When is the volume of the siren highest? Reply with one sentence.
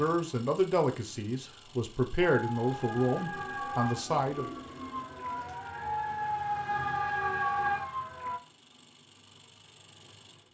The loudest moment of the siren is at 7 seconds.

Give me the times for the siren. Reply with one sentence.
You can hear the siren from 2.2 to 8.4 s.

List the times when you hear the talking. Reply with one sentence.
The talking can be heard from 0.0 to 4.5 s.